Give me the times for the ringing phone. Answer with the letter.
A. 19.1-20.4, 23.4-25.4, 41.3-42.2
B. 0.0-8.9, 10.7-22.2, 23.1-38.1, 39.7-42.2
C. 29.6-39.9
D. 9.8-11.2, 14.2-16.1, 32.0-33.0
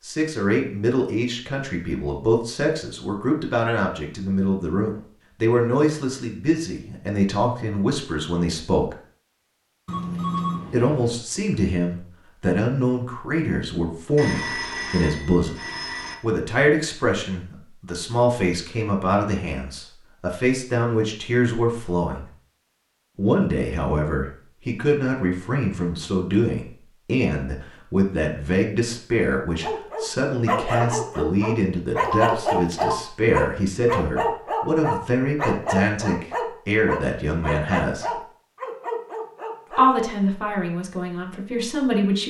D.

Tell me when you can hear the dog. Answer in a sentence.
You can hear the dog from 29.6 to 39.9 s.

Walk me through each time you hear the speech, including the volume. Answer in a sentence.
The speech can be heard from 0.0 to 8.9 s, at a steady volume; from 10.7 to 22.2 s, at a steady volume; from 23.1 to 38.1 s, at a steady volume; and briefly from 39.7 to 42.2 s.